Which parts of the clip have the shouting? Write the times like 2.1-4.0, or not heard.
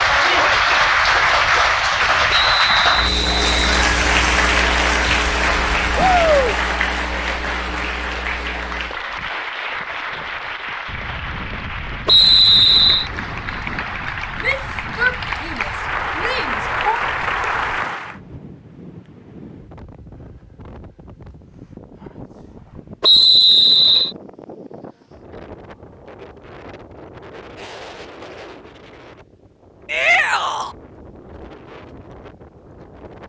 6.0-6.5, 14.4-17.0, 29.9-30.8.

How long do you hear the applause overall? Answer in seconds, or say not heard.
18 s.